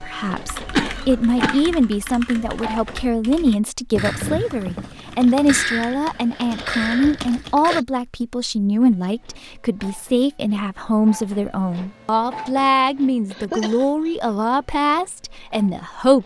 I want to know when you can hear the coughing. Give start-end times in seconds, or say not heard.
0.7-1.7, 6.2-7.8, 13.3-14.2.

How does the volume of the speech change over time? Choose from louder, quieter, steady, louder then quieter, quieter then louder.
steady.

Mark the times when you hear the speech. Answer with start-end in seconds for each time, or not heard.
0.0-16.2.